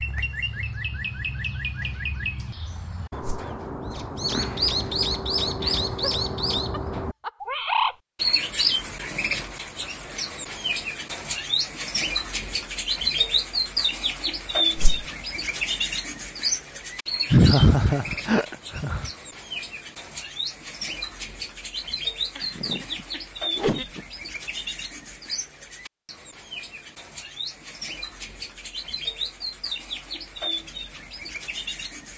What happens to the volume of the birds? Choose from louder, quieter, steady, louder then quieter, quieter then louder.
quieter.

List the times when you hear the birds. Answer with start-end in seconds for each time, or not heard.
0.0-32.1.